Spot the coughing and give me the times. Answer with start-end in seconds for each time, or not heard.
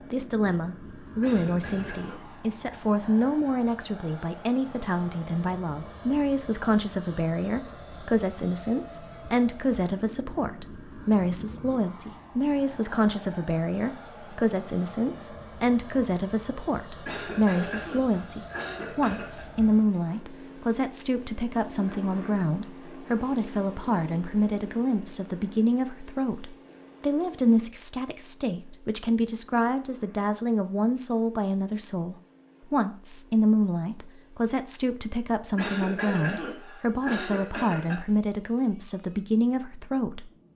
1.2-2.5, 17.1-19.4, 35.5-38.0.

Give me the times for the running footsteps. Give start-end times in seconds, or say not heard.
not heard.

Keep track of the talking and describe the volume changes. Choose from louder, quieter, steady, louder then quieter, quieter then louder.
steady.